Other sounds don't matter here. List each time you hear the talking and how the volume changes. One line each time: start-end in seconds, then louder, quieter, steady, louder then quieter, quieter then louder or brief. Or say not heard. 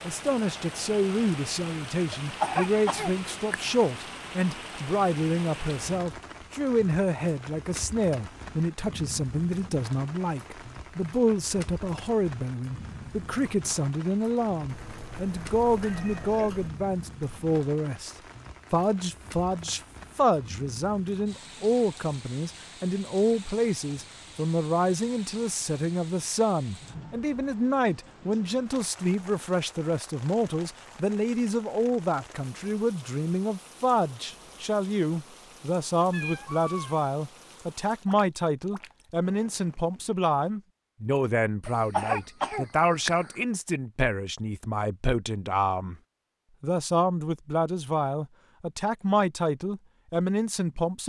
0.0-46.0 steady
46.6-51.0 steady.